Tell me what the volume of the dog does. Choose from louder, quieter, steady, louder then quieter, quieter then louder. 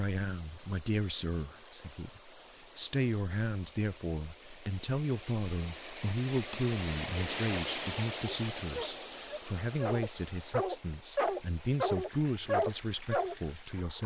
louder.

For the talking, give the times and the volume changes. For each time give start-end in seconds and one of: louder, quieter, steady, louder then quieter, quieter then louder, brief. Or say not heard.
0.0-14.0 steady.